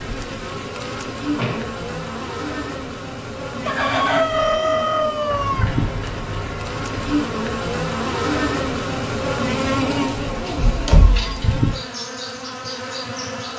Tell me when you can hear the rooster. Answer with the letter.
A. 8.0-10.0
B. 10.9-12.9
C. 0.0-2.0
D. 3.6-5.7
D.